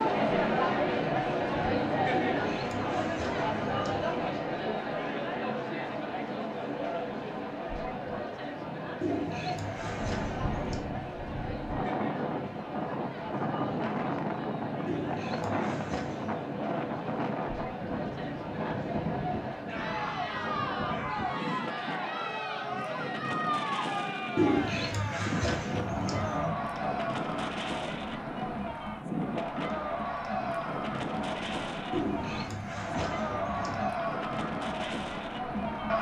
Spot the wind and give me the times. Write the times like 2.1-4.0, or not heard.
9.9-35.9.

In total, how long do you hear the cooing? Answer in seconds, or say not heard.
10 s.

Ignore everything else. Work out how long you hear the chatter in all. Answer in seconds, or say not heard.
36 s.